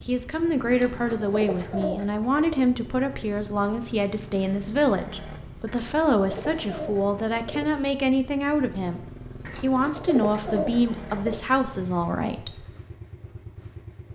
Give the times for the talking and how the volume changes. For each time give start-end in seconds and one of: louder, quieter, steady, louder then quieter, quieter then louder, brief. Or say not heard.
0.1-12.7 steady.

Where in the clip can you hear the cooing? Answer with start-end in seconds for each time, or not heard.
0.7-2.6, 5.7-7.7, 9.4-11.3.